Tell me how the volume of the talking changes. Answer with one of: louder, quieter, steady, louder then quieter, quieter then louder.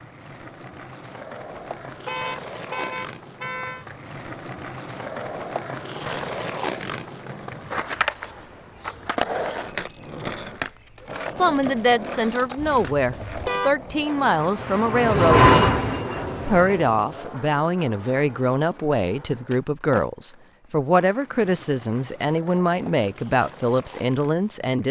steady.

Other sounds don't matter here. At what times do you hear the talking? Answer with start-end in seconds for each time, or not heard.
11.3-15.5, 16.4-24.8.